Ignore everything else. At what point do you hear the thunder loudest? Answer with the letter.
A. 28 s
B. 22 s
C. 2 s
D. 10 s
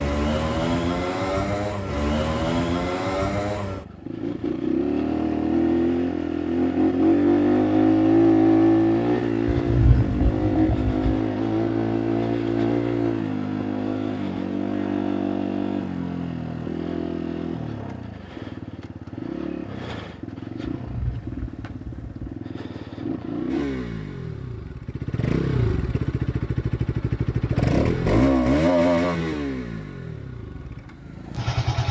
D.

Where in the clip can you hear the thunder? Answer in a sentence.
You can hear the thunder from 9.4 to 11.2 s and from 20.7 to 22.2 s.